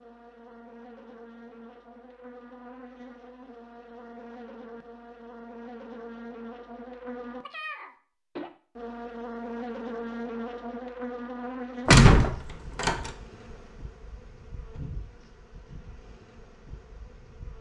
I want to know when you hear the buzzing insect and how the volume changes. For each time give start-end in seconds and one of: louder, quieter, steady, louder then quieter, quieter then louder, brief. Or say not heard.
0.0-17.5 louder then quieter.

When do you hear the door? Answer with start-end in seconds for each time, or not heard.
11.8-13.1.